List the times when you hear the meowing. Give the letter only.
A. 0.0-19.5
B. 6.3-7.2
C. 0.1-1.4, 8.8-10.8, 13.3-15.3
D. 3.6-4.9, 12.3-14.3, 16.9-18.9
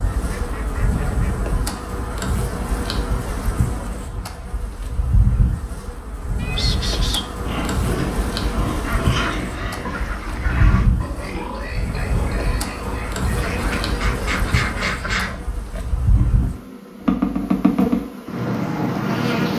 B.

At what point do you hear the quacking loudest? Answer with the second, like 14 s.
15 s.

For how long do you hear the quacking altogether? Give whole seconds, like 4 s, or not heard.
5 s.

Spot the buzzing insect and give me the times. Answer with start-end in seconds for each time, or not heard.
0.0-19.5.